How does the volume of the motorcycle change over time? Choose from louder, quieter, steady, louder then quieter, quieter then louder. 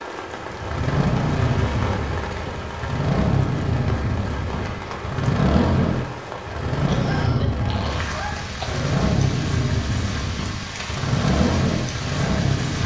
steady.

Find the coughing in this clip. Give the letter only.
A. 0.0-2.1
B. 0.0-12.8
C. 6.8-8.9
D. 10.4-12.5
C.